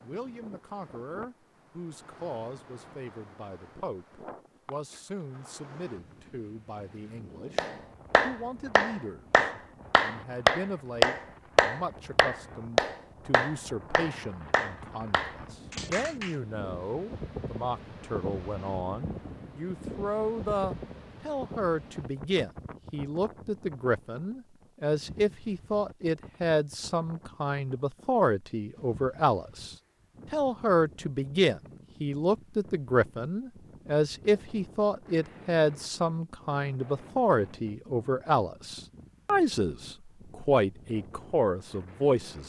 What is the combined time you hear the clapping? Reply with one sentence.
The clapping can be heard for 9 seconds in total.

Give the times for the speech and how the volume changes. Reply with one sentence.
You can hear the speech from 0.0 to 42.4 s, getting louder.